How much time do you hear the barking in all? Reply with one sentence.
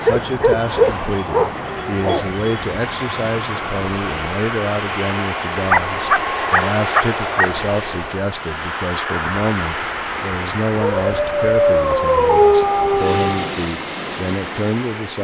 The barking can be heard for 7 seconds in total.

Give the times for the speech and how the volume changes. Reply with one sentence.
You can hear the speech from 0.0 to 15.1 s, at a steady volume.